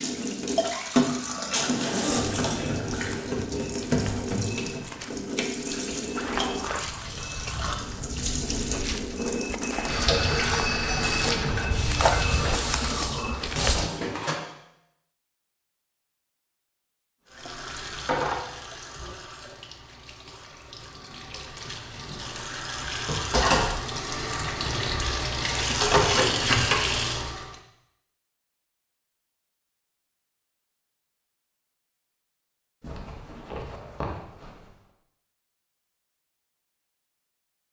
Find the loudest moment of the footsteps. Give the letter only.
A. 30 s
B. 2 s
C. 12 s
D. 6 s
C.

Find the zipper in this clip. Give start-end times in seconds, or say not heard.
1.5-3.2, 32.8-34.6.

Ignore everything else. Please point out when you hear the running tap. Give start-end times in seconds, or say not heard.
0.0-14.4, 17.3-27.6.